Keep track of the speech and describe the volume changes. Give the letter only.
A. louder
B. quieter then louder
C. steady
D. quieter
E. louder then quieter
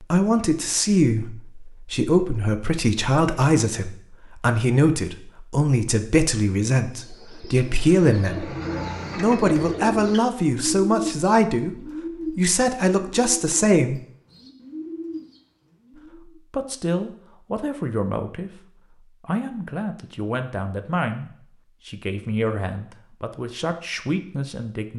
D.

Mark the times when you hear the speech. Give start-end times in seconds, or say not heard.
0.0-8.6, 9.2-14.0, 16.1-24.9.